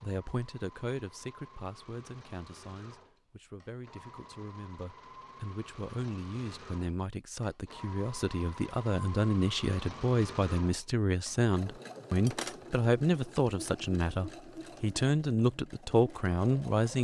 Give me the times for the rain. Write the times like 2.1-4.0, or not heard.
not heard.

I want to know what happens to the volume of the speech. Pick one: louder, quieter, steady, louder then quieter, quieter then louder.
louder.